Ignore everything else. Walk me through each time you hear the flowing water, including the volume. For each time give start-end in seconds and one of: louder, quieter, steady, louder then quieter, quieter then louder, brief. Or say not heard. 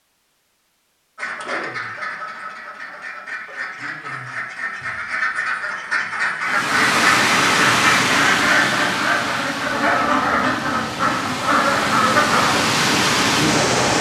6.4-13.9 quieter then louder.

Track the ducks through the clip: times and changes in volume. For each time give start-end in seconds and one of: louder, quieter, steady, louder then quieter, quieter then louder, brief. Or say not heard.
1.1-12.6 louder.